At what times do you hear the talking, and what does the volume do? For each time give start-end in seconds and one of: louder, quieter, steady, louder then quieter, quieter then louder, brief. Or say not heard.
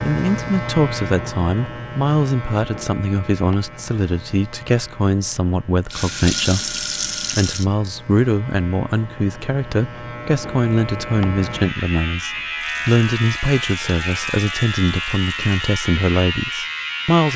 0.0-17.3 steady.